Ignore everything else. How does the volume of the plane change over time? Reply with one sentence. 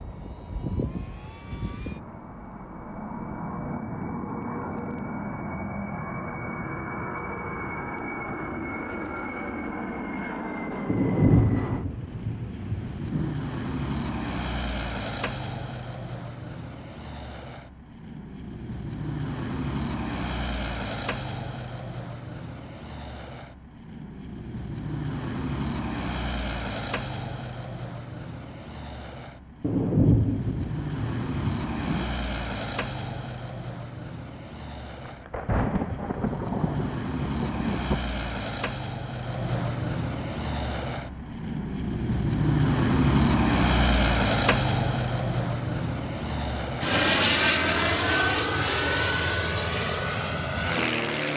The loudness of the plane goes up.